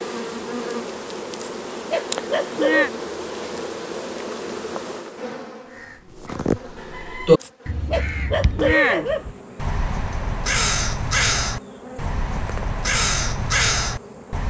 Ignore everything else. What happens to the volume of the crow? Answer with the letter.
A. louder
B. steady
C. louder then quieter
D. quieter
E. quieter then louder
E.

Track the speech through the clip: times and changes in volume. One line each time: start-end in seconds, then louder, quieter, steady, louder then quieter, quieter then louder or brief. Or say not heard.
not heard.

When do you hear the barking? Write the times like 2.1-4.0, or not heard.
1.4-2.9, 7.4-9.2.